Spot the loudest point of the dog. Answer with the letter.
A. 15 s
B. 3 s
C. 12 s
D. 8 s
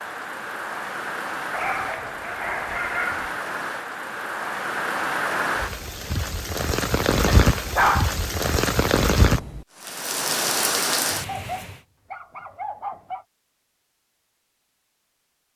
D.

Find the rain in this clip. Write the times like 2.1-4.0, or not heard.
0.0-11.8.